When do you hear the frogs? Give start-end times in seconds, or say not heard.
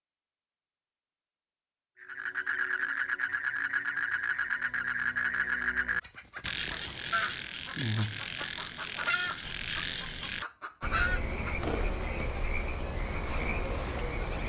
2.0-14.4.